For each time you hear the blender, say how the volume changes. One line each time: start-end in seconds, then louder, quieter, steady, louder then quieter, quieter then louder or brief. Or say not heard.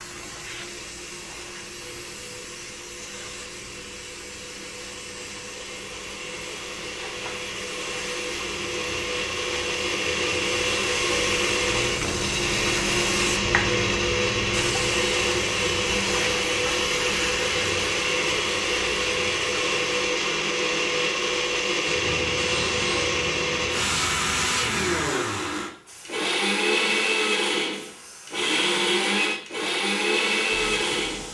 0.0-31.2 louder.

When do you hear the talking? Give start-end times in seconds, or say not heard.
not heard.